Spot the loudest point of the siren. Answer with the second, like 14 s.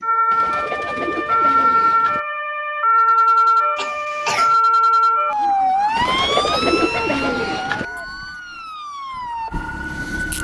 3 s.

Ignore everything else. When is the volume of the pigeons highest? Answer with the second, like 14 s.
7 s.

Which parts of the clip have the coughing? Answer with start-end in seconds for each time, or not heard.
3.8-4.5.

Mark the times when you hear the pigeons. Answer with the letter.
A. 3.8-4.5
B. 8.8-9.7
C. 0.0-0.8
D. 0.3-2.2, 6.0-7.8
D.